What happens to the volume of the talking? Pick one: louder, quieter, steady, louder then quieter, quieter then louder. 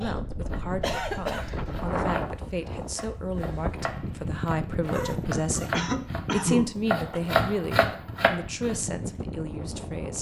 louder then quieter.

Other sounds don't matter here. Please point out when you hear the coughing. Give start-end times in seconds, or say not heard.
0.8-1.8, 5.7-7.2.